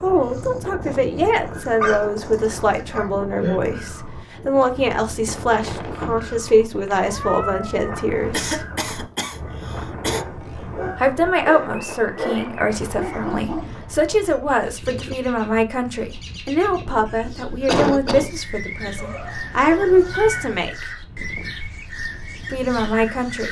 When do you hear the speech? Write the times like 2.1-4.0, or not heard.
0.0-8.7, 10.9-20.9, 22.5-23.4.